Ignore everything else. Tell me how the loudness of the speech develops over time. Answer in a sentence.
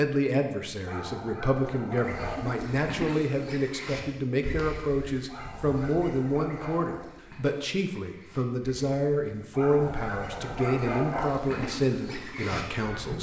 The loudness of the speech stays about the same.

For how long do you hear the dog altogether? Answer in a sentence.
The dog can be heard for 5 seconds in total.